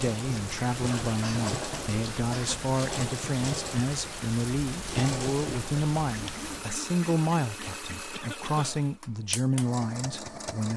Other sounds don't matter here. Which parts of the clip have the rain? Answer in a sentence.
You can hear the rain from 0.0 to 6.7 s.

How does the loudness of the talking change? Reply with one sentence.
The volume of the talking stays about the same.